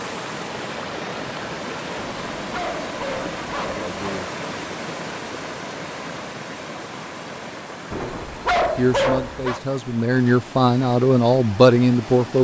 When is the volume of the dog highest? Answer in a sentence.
The loudest moment of the dog is at 9 seconds.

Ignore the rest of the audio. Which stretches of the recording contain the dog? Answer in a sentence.
The dog can be heard from 1.9 to 4.3 s and from 7.9 to 9.6 s.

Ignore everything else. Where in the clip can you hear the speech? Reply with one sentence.
The speech can be heard from 8.8 to 12.3 s.